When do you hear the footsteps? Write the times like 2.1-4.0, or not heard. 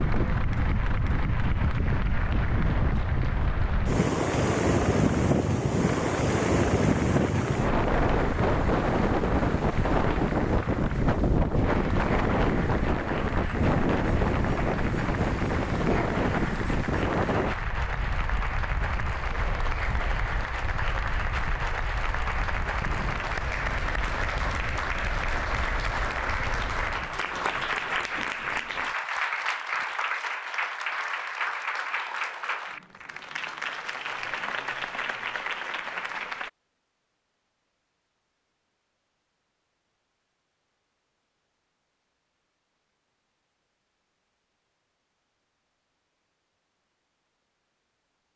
not heard.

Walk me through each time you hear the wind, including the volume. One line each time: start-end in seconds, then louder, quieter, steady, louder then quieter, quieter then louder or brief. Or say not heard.
0.0-27.2 quieter.